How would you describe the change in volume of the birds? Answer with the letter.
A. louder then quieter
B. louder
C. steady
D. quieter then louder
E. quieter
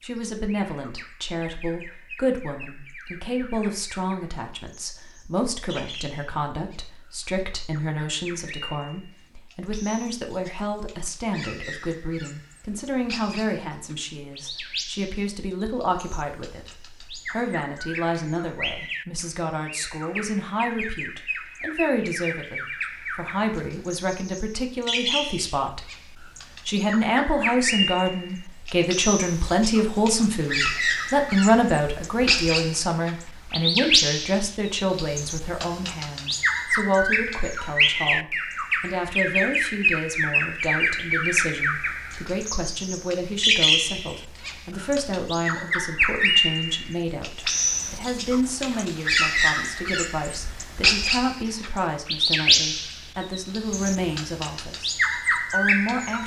B.